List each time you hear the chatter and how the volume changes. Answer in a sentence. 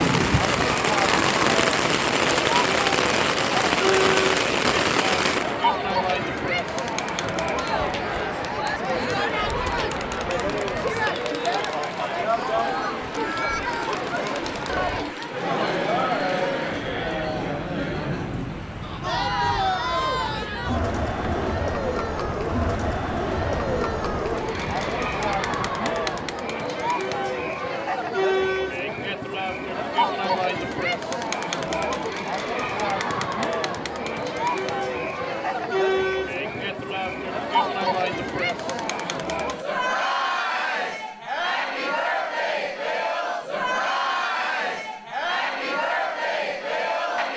The chatter can be heard from 0.0 to 47.3 s, at a steady volume.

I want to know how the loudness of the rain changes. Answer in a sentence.
The loudness of the rain goes down.